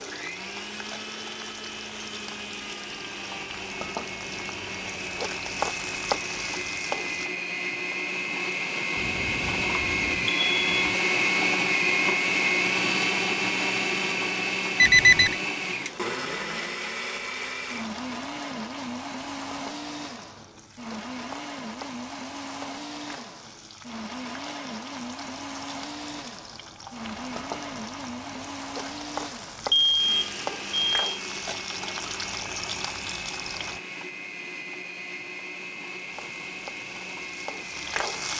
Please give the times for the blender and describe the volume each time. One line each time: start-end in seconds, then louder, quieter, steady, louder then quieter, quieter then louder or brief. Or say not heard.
0.0-38.3 louder then quieter.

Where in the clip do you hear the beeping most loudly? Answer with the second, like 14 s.
15 s.